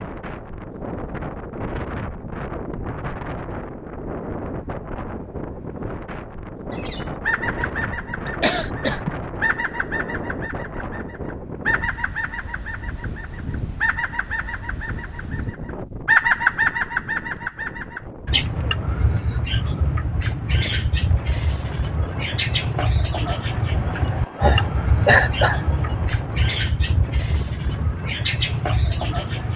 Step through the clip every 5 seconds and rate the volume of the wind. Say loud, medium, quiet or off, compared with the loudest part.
loud, loud, loud, medium, medium, medium.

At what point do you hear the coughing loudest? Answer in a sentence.
The volume of the coughing peaks at 25 seconds.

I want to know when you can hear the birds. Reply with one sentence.
You can hear the birds from 6.7 to 29.5 s.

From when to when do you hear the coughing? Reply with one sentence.
The coughing can be heard from 8.4 to 9.6 s and from 23.7 to 26.2 s.